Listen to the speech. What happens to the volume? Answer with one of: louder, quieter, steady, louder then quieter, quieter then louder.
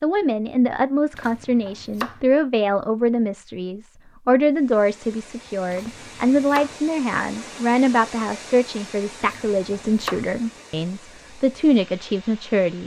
steady.